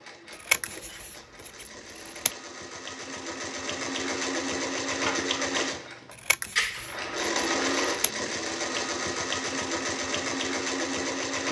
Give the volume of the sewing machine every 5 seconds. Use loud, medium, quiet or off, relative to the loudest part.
medium, loud, loud.